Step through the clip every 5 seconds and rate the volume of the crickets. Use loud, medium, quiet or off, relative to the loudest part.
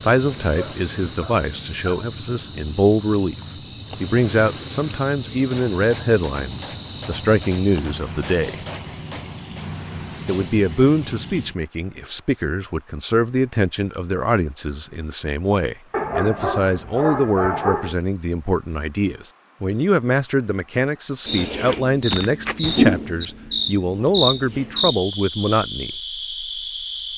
medium, medium, medium, quiet, loud, medium.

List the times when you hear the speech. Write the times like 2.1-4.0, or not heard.
0.0-3.4, 4.0-8.6, 10.2-25.9.